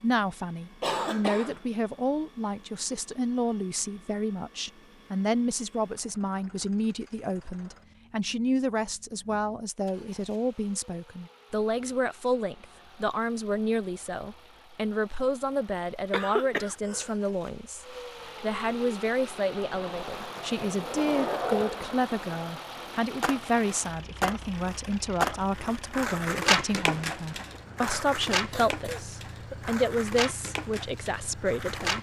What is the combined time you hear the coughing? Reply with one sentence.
The coughing can be heard for 3 seconds in total.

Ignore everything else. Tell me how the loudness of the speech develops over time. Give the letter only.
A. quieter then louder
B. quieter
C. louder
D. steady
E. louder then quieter
D.